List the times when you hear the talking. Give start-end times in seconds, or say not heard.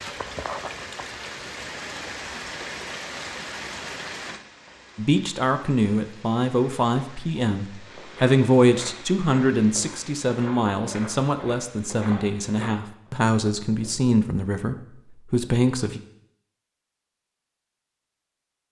5.0-16.0.